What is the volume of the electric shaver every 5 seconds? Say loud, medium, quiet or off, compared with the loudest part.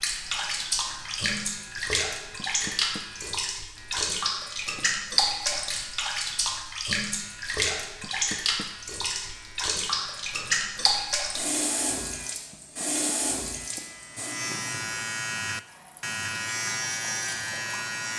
quiet, quiet, medium, loud.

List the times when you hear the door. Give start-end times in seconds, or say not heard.
2.4-3.0, 8.0-8.7, 12.5-13.2.